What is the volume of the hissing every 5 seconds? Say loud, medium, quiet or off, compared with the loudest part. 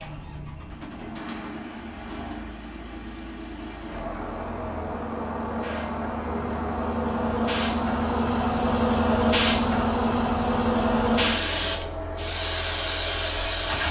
quiet, loud, loud.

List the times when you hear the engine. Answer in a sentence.
You can hear the engine from 0.0 to 13.8 s.